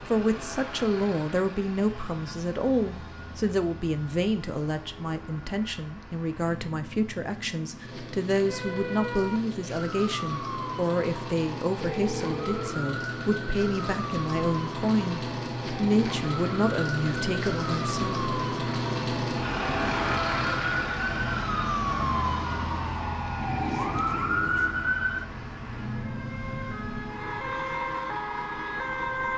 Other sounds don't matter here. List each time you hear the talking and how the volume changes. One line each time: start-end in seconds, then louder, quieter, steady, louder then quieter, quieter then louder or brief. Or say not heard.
0.1-18.2 steady.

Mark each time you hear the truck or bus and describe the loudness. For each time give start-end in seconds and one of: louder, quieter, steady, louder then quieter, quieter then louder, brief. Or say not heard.
0.0-29.3 louder then quieter.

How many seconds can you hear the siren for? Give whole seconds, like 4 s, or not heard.
21 s.